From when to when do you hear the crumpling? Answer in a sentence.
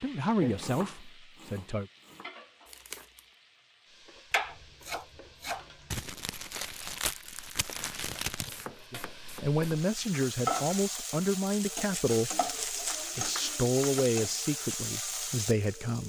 The crumpling can be heard from 2.6 to 3.2 s, from 5.9 to 8.7 s and from 11.4 to 13.1 s.